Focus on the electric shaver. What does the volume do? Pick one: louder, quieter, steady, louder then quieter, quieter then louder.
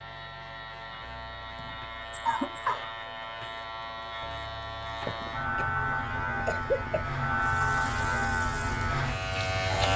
louder.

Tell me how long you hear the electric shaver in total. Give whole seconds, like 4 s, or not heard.
10 s.